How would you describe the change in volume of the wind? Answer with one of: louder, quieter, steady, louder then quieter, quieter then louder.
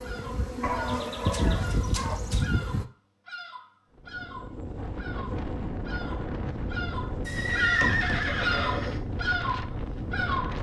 steady.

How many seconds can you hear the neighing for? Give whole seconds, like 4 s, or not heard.
3 s.